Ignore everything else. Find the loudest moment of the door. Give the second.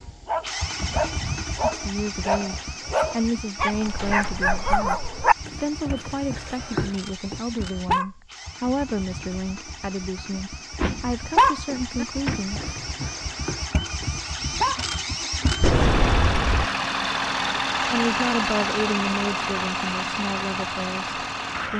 16 s.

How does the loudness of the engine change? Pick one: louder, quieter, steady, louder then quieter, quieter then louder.
quieter then louder.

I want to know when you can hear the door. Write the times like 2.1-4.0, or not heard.
4.0-4.8, 10.3-12.4, 15.6-16.7.